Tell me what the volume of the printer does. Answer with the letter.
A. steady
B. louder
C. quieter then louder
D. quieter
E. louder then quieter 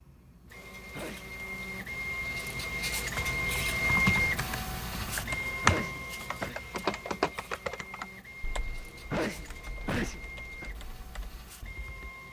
E.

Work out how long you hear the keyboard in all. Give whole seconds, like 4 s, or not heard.
9 s.